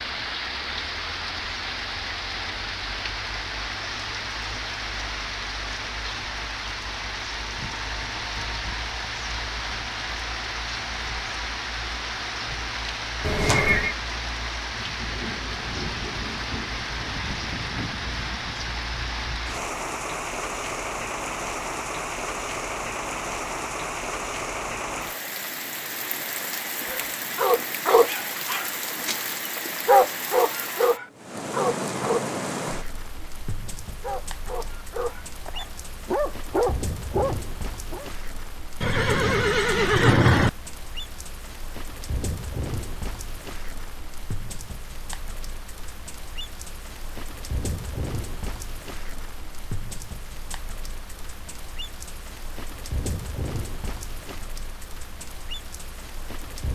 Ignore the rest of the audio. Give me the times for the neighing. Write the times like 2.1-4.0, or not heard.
13.2-13.9, 38.8-40.5.